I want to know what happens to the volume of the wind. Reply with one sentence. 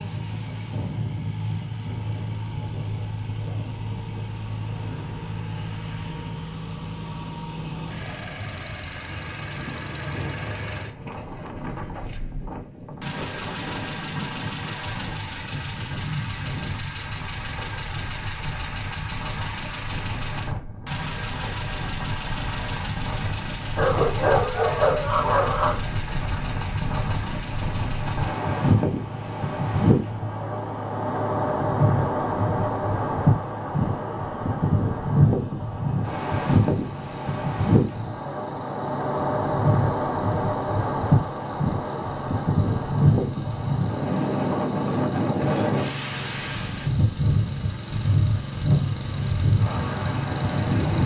The loudness of the wind goes up.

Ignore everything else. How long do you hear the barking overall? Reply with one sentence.
The barking can be heard for 2 seconds in total.